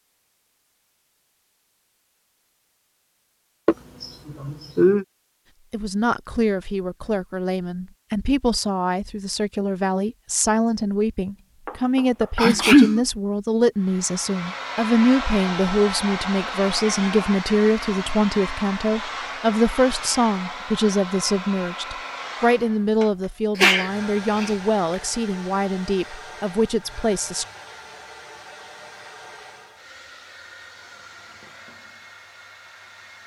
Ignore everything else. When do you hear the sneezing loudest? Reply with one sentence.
The volume of the sneezing peaks at 13 seconds.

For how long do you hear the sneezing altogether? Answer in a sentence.
You can hear the sneezing for 3 seconds altogether.